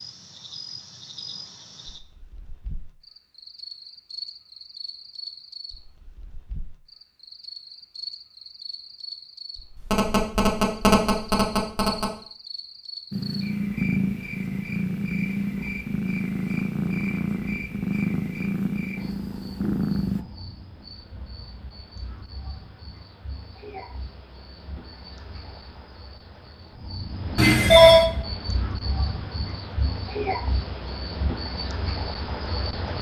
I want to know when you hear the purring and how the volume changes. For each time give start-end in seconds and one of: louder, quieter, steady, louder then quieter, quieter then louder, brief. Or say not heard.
13.1-20.2 steady.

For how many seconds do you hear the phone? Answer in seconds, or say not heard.
3 s.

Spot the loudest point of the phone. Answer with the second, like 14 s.
28 s.